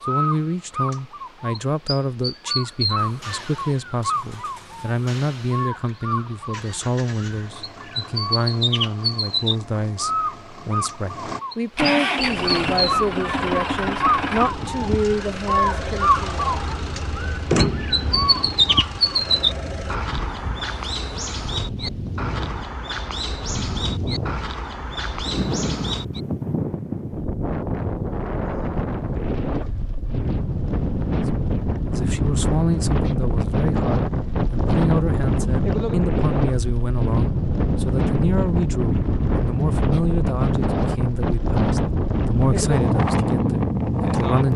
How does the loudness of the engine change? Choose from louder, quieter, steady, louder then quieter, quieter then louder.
louder.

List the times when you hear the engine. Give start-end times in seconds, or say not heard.
3.0-20.0.